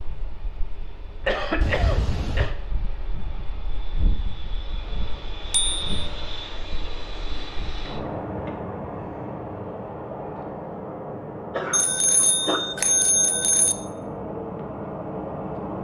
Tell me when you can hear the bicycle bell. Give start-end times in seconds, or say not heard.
1.6-2.5, 5.5-5.9, 11.7-13.8.